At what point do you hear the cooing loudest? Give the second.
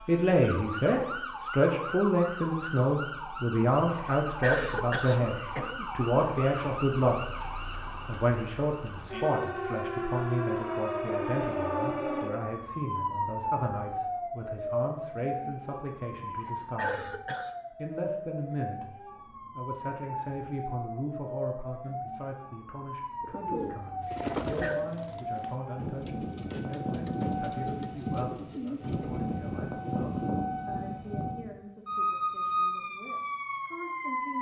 24 s.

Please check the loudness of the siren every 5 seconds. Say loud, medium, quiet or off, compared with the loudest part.
medium, medium, loud, medium, medium, loud, loud.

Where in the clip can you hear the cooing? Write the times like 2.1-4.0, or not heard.
23.2-29.2.